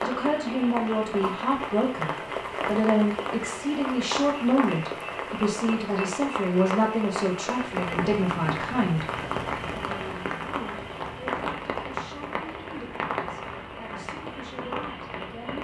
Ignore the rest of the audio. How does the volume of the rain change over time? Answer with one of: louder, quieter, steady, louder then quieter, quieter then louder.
steady.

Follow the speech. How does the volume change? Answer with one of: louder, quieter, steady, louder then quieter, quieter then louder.
quieter.